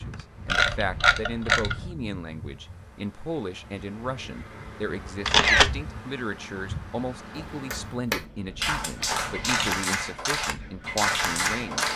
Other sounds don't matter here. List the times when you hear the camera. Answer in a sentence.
The camera can be heard from 0.5 to 1.8 s, from 5.2 to 5.8 s and from 9.0 to 9.8 s.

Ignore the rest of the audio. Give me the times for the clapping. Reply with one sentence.
You can hear the clapping from 7.3 to 11.9 s.